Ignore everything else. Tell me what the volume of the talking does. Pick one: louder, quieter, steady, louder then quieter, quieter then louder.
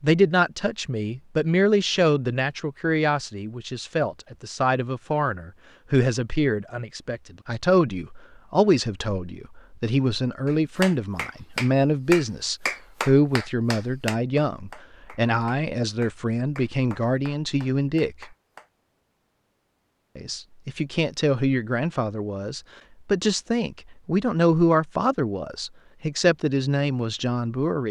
steady.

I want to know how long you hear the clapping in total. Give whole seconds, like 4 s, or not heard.
8 s.